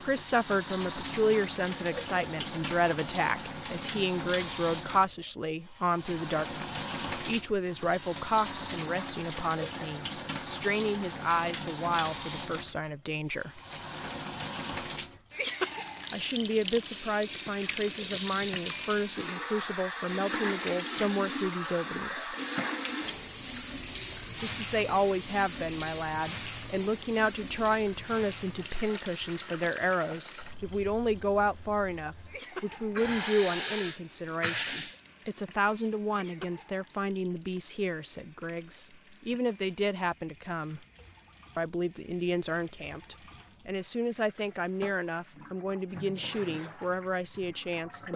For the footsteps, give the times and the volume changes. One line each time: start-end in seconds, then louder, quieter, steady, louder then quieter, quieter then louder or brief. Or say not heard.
not heard.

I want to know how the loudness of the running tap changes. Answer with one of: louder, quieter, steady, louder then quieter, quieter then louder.
quieter.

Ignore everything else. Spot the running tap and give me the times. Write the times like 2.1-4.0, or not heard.
0.0-48.1.